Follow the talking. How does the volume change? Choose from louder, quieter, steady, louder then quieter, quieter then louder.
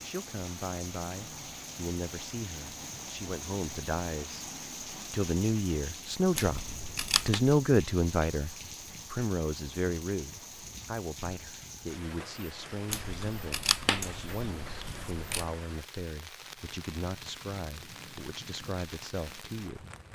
louder then quieter.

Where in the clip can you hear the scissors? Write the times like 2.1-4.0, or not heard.
6.3-7.4, 12.9-15.5.